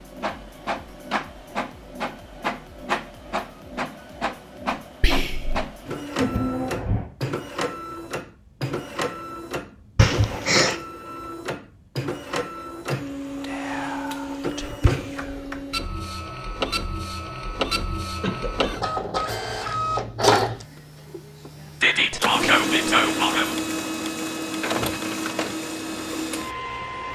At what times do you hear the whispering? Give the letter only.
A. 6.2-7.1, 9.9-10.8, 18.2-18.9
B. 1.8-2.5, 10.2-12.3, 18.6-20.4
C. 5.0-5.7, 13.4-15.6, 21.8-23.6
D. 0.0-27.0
C.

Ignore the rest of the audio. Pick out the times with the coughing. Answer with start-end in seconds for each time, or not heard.
6.2-7.1, 9.9-10.8, 18.2-18.9.